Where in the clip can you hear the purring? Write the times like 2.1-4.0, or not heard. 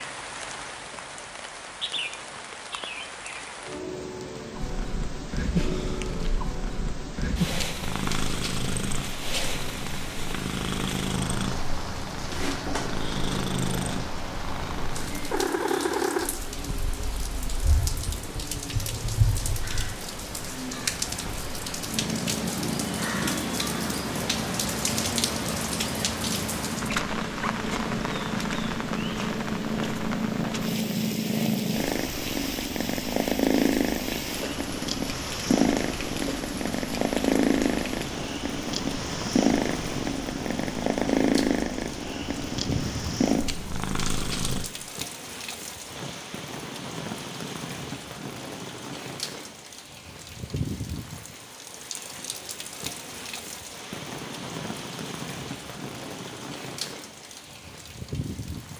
4.5-44.7.